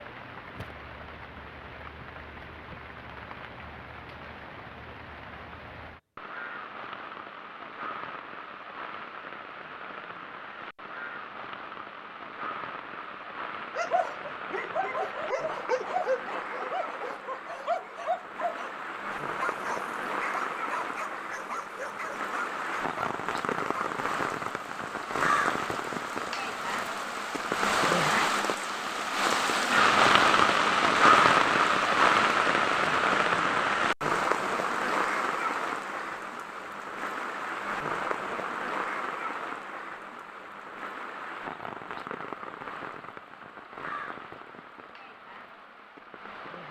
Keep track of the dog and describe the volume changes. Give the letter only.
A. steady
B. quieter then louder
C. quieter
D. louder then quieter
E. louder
C.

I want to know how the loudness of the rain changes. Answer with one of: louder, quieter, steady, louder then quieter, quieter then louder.
louder then quieter.